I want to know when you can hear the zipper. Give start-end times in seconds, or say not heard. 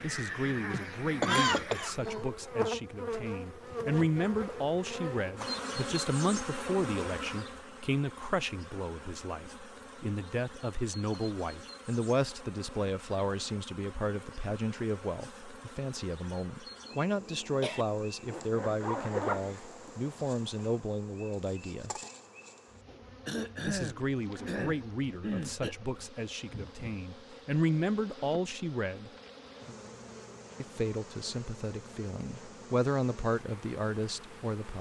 18.2-19.9.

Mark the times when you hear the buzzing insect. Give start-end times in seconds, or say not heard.
0.0-34.7.